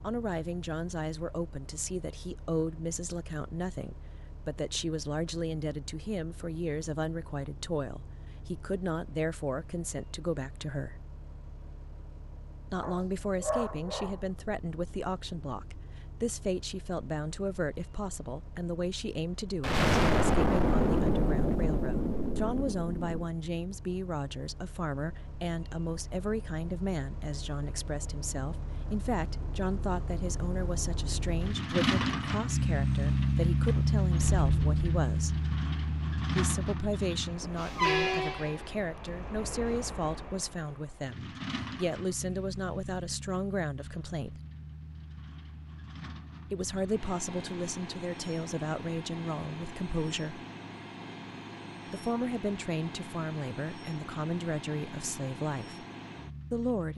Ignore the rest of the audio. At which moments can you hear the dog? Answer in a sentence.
You can hear the dog from 12.8 to 14.2 s.